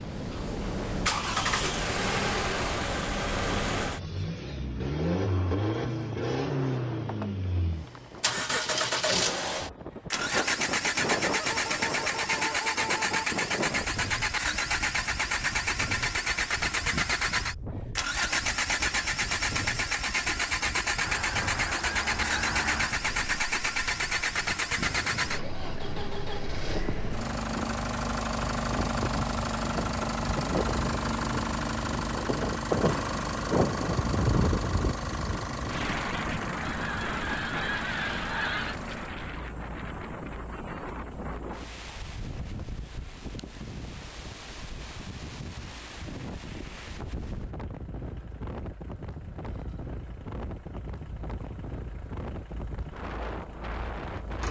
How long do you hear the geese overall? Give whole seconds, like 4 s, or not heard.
6 s.